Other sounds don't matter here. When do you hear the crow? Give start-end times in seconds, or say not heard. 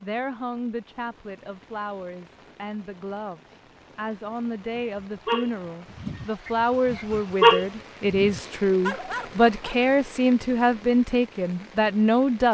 not heard.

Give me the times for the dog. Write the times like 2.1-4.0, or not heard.
4.7-9.8.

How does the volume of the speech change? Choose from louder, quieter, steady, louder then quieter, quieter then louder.
louder.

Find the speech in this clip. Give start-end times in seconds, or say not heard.
0.0-12.4.